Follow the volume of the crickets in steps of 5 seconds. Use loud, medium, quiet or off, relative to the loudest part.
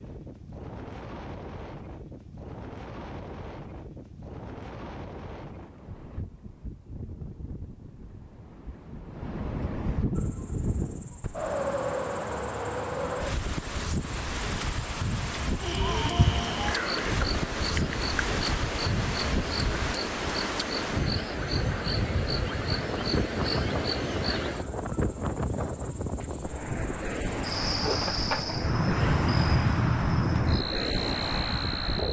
off, off, quiet, loud, loud, loud, loud.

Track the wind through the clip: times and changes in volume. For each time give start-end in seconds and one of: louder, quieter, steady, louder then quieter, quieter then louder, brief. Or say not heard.
0.0-32.0 louder.